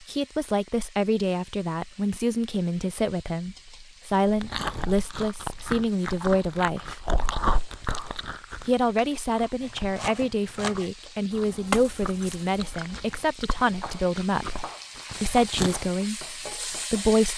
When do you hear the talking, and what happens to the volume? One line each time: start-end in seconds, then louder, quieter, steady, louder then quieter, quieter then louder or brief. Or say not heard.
0.1-7.1 steady
8.7-17.3 steady.